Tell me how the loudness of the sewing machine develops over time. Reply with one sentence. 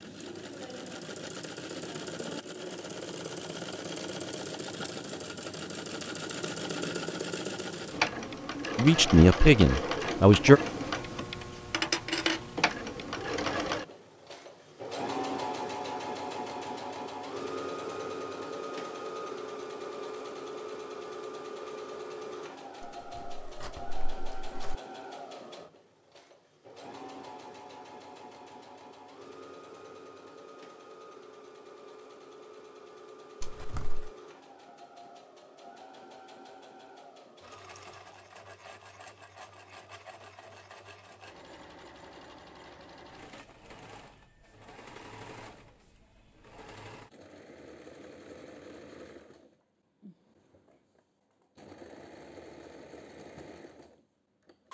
The loudness of the sewing machine goes down.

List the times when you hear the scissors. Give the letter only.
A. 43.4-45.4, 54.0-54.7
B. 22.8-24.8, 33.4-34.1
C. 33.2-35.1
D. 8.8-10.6
B.